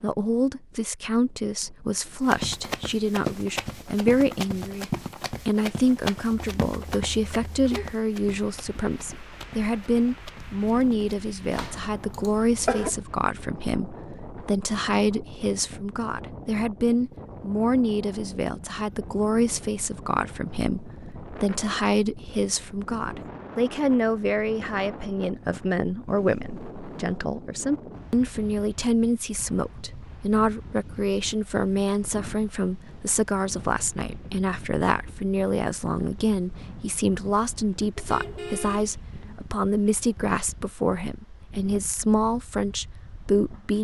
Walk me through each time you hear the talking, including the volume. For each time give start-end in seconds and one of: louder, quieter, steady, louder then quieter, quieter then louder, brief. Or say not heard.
0.0-43.7 steady.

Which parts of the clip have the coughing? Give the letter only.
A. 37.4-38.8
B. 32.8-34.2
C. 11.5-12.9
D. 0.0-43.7
C.